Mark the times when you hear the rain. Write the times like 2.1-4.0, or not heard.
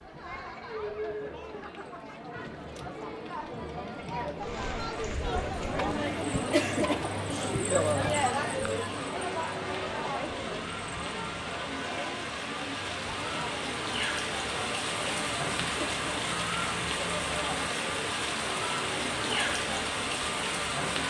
4.3-21.0.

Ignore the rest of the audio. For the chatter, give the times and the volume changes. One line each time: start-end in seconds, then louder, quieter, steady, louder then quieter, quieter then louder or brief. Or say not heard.
0.0-21.0 louder then quieter.